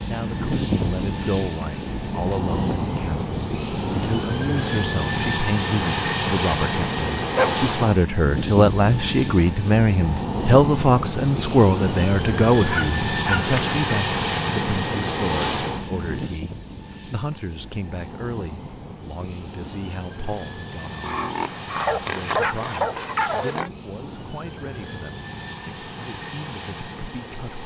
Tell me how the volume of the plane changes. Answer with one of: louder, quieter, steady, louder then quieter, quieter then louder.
quieter.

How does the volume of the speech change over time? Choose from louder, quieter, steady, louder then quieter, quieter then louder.
louder then quieter.